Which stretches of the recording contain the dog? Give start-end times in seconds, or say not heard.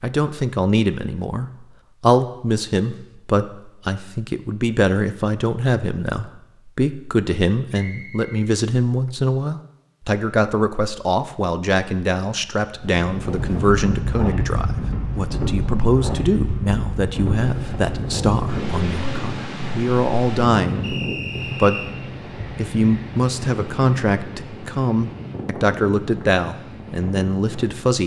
not heard.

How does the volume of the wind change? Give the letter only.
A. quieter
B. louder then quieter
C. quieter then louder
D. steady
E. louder
A.